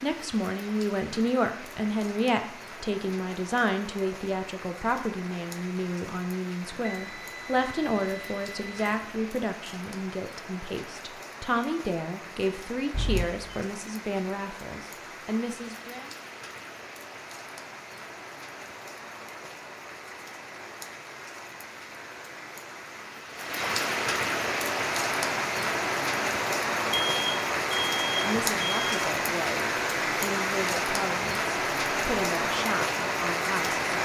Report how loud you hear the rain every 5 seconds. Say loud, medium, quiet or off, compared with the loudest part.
quiet, quiet, quiet, quiet, medium, loud, loud.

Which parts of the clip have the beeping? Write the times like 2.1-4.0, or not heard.
6.8-9.1, 12.9-13.5, 26.9-28.9.